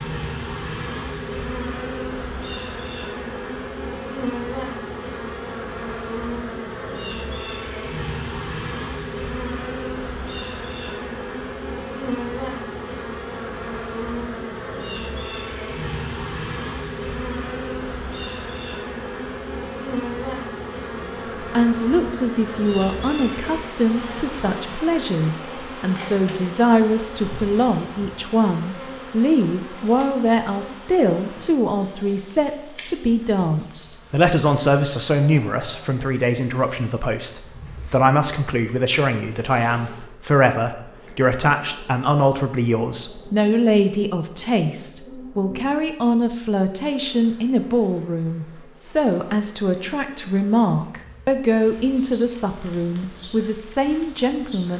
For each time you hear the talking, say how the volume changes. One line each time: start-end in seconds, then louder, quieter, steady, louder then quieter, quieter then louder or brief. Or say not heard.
21.0-54.7 steady.